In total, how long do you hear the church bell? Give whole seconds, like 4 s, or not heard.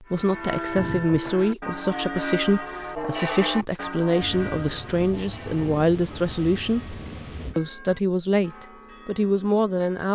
10 s.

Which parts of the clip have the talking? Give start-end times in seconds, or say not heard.
0.0-7.0, 7.5-10.0.